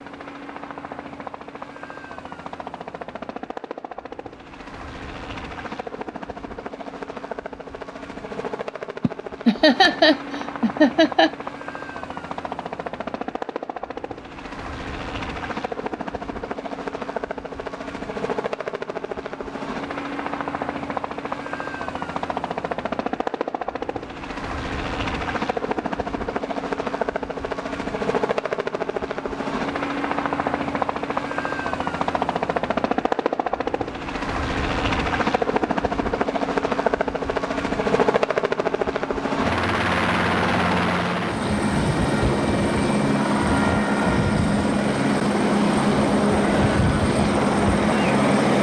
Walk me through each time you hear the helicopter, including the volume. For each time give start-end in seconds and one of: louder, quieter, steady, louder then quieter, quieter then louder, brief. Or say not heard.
0.0-48.5 louder.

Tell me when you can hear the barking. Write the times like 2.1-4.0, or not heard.
not heard.